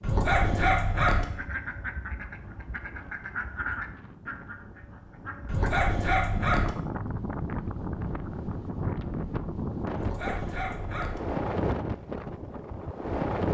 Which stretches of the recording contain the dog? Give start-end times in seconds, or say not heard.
0.0-1.2, 5.5-6.7, 9.9-11.2.